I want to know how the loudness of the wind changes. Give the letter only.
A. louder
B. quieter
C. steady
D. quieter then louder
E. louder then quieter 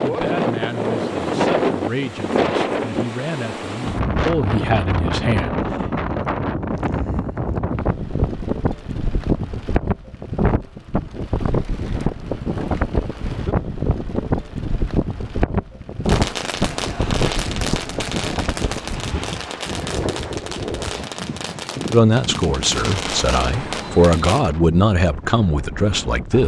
B.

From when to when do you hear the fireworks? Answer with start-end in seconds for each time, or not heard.
16.1-24.5.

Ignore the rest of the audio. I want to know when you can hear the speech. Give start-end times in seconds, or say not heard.
0.0-5.6, 21.9-26.4.